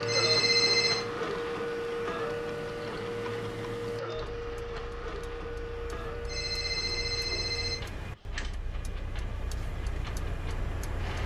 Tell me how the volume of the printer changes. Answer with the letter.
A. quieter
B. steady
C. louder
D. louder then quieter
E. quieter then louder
A.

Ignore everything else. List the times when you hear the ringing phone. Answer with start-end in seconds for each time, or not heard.
0.1-1.1, 6.2-7.8.